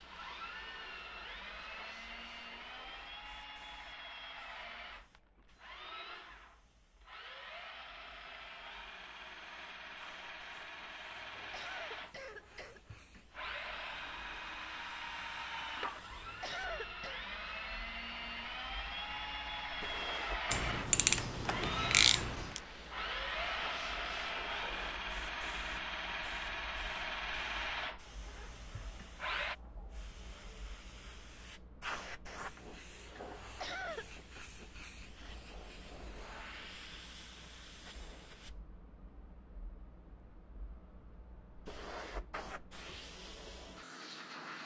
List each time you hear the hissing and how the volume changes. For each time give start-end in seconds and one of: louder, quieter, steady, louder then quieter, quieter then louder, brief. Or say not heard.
0.0-44.6 louder.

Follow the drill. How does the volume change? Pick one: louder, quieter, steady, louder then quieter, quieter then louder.
louder.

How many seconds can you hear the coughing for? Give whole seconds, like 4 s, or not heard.
4 s.